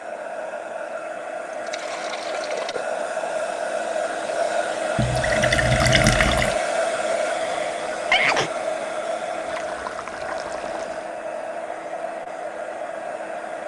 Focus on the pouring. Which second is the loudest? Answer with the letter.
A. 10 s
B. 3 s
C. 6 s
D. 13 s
C.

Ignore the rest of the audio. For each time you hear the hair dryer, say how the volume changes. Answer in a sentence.
You can hear the hair dryer from 0.0 to 13.6 s, getting louder then quieter.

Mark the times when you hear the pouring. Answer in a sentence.
The pouring can be heard from 1.5 to 2.9 s, from 5.0 to 6.5 s and from 9.4 to 11.1 s.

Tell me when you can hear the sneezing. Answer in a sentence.
You can hear the sneezing from 7.4 to 8.5 s.